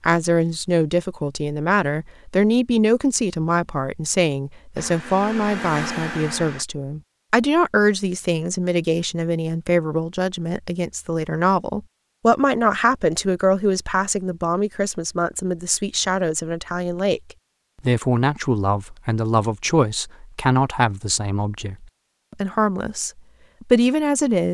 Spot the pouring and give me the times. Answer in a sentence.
The pouring can't be heard in this clip.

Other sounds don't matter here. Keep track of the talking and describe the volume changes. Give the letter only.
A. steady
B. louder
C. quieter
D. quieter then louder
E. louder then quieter
A.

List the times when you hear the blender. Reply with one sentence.
The blender can be heard from 4.8 to 6.7 s.